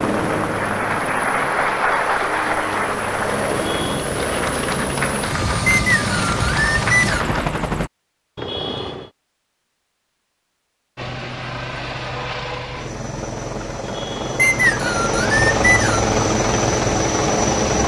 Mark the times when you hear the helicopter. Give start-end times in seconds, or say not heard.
0.0-7.9, 10.9-17.8.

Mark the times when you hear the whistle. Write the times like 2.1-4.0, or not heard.
5.7-7.2, 14.3-16.1.